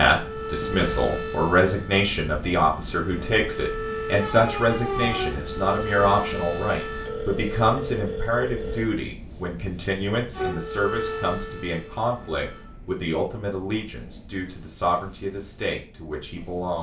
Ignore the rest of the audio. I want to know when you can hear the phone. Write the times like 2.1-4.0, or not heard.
6.8-8.8.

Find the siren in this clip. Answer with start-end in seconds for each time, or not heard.
0.1-7.2, 10.3-12.7.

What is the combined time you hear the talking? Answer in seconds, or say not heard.
17 s.